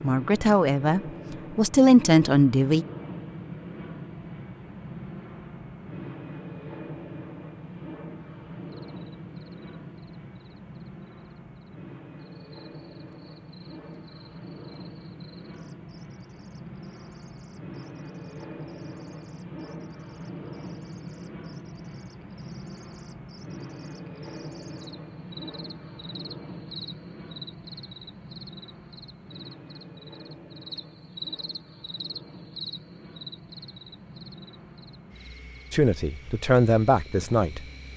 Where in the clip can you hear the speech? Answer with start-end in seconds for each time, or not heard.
0.0-2.9, 35.7-37.9.